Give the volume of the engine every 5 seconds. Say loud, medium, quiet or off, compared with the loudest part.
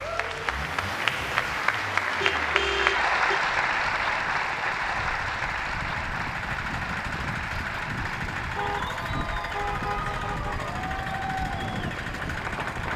medium, loud, loud.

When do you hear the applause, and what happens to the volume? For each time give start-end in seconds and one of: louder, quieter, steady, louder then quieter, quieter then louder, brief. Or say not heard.
0.0-12.9 quieter.